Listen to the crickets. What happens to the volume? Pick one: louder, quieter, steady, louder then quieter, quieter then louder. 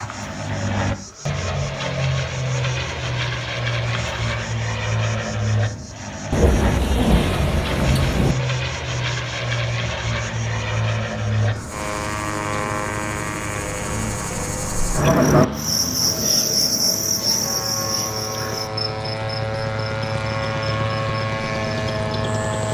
louder.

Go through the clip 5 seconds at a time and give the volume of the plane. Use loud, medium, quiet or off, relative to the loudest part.
loud, loud, loud, medium, loud.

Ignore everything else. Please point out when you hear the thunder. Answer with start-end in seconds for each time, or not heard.
6.3-8.3.